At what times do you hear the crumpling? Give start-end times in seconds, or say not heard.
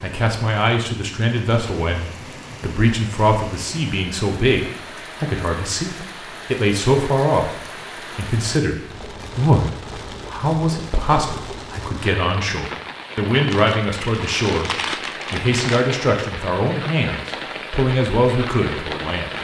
13.5-15.9.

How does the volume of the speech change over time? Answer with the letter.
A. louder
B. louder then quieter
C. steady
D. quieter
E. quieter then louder
C.